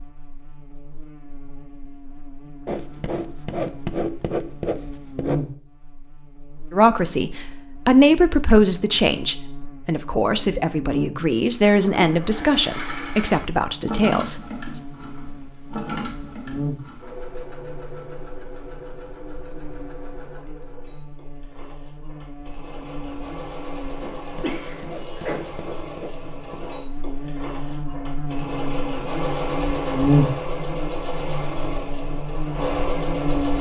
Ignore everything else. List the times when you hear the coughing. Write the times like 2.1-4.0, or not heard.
24.4-25.4.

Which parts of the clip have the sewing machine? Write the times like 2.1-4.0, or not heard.
11.7-33.5.